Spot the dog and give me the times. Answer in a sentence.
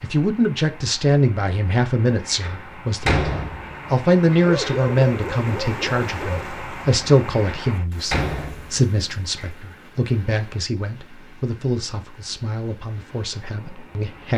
You can hear the dog from 4.4 to 6.5 s.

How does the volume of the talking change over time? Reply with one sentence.
The volume of the talking goes down.